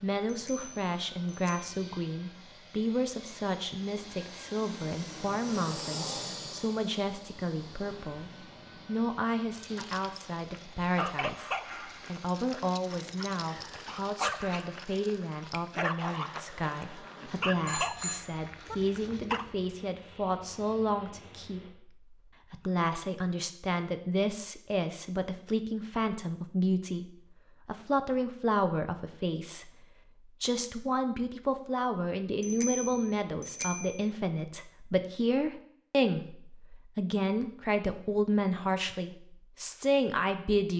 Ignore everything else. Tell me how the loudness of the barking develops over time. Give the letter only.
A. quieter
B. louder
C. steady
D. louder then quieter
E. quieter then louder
E.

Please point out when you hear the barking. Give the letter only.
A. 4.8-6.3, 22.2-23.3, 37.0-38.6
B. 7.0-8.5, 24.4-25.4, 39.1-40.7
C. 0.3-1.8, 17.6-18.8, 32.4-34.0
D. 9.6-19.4
D.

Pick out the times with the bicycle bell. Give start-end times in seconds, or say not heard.
0.3-1.8, 17.6-18.8, 32.4-34.0.